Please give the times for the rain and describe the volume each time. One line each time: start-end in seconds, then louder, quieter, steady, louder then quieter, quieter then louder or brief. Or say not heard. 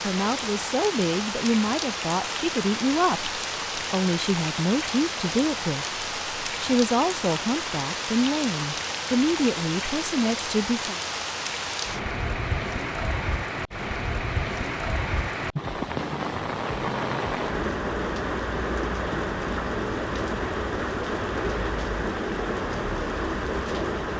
0.0-24.1 steady.